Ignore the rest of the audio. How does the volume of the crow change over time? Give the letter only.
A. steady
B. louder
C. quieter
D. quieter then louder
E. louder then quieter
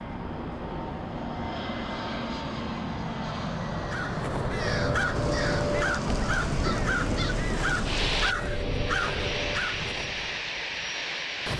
A.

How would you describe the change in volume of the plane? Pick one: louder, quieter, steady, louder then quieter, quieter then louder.
steady.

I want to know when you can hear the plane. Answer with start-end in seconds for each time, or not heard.
0.0-11.5.